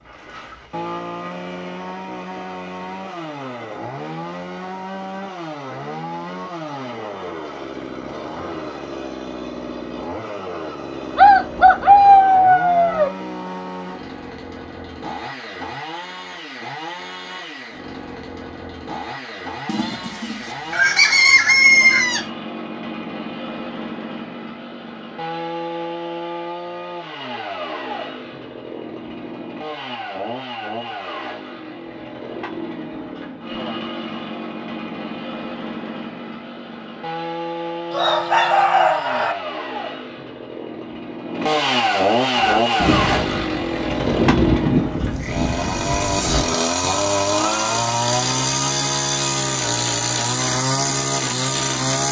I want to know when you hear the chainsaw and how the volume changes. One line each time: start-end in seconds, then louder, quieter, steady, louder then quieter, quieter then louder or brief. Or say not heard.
0.0-52.0 louder.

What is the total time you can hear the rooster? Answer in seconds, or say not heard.
6 s.